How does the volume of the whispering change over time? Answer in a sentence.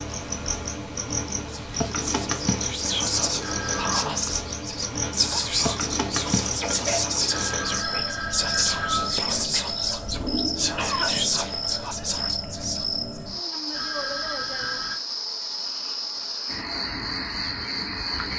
The loudness of the whispering stays about the same.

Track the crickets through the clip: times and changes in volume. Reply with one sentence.
You can hear the crickets from 0.0 to 18.3 s, at a steady volume.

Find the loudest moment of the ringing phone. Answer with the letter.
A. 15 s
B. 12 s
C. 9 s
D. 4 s
C.